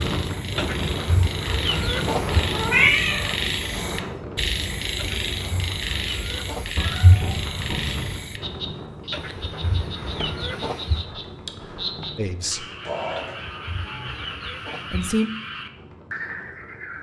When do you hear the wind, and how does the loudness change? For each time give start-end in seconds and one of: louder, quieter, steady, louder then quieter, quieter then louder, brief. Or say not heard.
0.0-16.9 quieter.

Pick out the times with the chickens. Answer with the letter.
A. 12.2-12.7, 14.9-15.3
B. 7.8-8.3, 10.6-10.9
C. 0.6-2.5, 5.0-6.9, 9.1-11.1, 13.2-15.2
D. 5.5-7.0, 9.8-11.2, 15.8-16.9
C.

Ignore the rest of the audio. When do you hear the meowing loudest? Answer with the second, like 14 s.
3 s.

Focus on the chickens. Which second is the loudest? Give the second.
2 s.